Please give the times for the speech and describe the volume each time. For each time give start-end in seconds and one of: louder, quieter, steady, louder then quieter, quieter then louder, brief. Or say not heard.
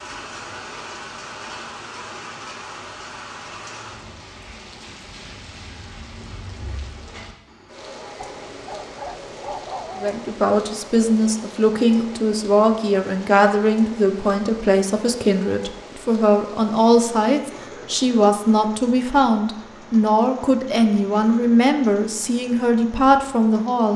10.0-23.9 steady.